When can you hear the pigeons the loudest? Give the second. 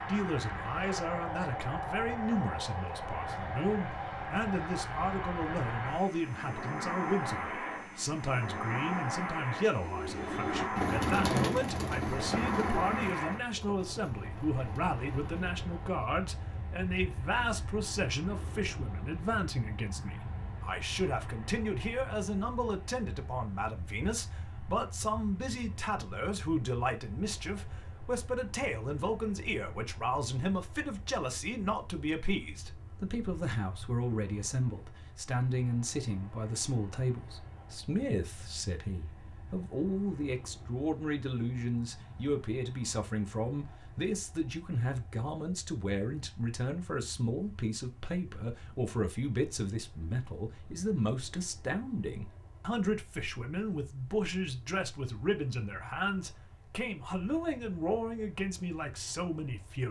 11 s.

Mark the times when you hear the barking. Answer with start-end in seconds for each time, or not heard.
not heard.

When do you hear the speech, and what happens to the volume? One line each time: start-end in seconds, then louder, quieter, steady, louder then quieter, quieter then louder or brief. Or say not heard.
0.1-59.8 steady.